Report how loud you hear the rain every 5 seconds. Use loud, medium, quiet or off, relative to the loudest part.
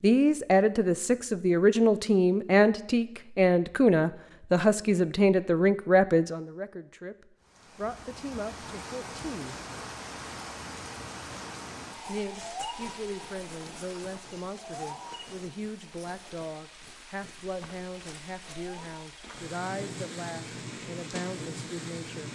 off, loud, loud, medium, loud.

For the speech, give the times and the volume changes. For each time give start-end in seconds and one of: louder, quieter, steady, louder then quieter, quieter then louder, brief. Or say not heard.
0.0-9.6 quieter
12.1-22.3 steady.